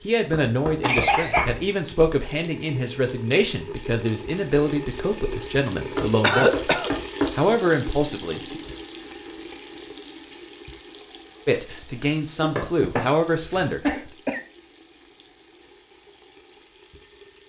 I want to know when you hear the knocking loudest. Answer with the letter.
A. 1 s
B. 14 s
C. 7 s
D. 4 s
C.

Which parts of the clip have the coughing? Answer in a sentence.
The coughing can be heard from 0.8 to 1.6 s, from 6.2 to 6.9 s and from 12.4 to 14.4 s.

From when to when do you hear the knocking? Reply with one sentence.
You can hear the knocking from 0.3 to 1.6 s, from 6.0 to 7.3 s and from 12.6 to 13.1 s.